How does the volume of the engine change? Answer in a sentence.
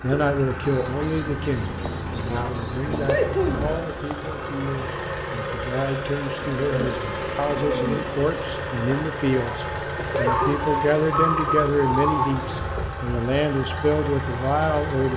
The loudness of the engine stays about the same.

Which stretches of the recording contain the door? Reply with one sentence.
You can't hear the door here.